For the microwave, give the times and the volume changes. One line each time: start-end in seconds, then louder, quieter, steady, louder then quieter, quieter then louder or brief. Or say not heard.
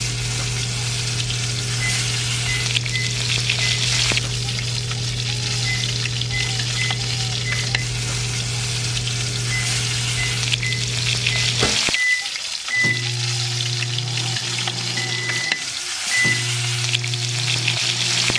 0.0-18.3 steady.